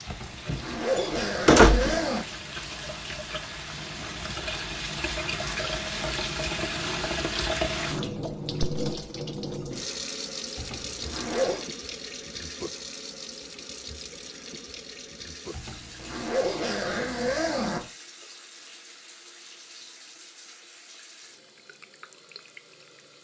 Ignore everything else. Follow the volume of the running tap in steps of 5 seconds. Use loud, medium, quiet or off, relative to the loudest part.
medium, loud, medium, quiet, quiet.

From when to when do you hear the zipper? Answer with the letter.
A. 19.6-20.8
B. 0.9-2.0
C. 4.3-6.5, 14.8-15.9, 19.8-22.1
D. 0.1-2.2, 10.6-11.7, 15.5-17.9
D.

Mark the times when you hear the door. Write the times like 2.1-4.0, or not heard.
0.9-2.0.